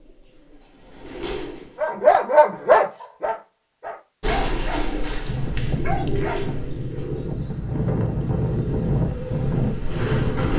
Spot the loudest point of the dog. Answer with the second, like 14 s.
2 s.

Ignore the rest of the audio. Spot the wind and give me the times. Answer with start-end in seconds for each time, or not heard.
5.2-10.5.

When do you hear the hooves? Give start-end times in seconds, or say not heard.
not heard.